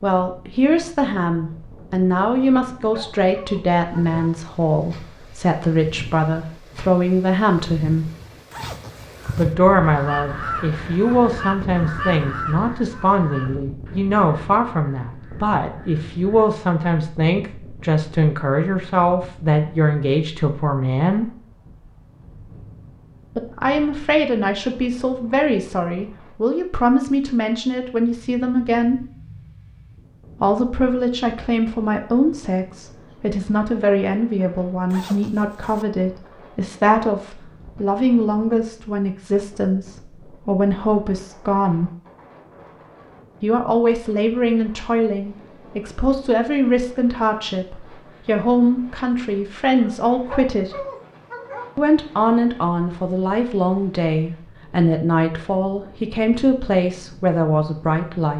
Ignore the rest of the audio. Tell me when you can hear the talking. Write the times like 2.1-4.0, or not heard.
0.0-8.1, 9.3-21.3, 23.4-29.1, 30.4-41.9, 43.4-50.7, 51.8-58.3.